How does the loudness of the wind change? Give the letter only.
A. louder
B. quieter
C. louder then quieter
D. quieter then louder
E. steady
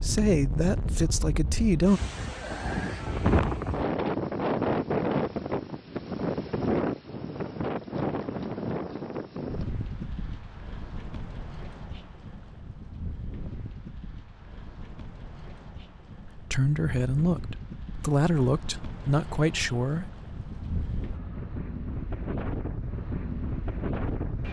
D.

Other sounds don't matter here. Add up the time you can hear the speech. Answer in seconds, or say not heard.
6 s.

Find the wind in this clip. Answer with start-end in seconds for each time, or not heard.
0.0-24.4.